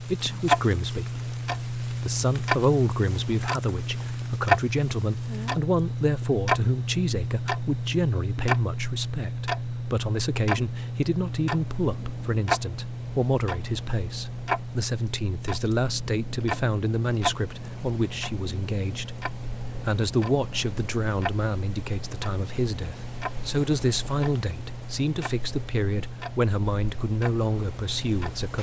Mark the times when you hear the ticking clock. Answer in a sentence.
The ticking clock can be heard from 0.0 to 28.5 s.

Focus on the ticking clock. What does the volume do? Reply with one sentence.
The volume of the ticking clock goes down.